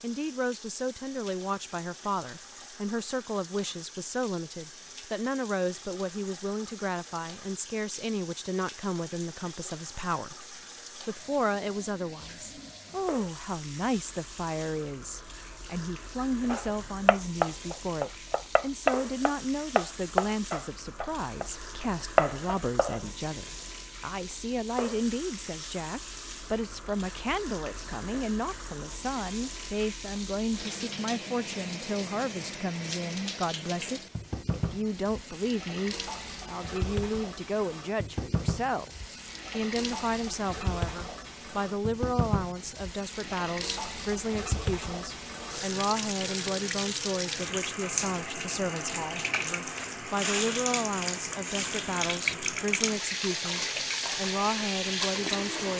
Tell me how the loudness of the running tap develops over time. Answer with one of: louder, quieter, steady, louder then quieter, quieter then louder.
louder.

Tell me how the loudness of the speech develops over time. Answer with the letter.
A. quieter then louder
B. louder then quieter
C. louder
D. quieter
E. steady
E.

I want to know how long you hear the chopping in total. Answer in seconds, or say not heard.
6 s.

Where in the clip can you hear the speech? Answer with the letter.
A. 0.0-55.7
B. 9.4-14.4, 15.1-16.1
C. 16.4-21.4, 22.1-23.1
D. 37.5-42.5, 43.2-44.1
A.